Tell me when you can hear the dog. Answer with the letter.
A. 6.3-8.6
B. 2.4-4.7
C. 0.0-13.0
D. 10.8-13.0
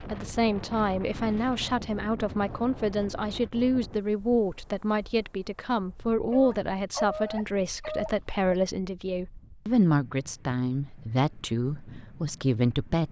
A.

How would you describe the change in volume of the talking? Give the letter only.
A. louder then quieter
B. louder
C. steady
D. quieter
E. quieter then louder
C.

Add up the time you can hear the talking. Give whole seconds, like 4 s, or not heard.
13 s.